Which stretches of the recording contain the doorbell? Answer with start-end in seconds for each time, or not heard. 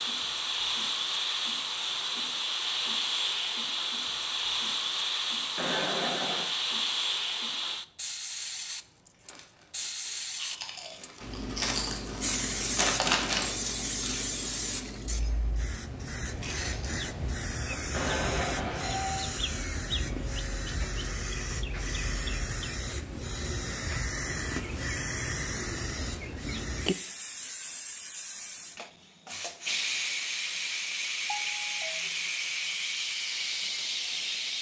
5.5-6.5, 17.9-19.4, 31.2-32.0.